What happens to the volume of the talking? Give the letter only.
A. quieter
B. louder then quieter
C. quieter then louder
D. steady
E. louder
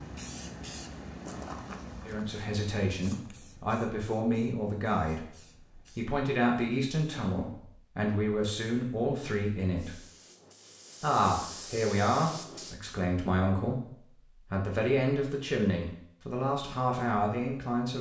D.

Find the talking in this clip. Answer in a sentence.
You can hear the talking from 2.0 to 10.0 s and from 11.0 to 17.9 s.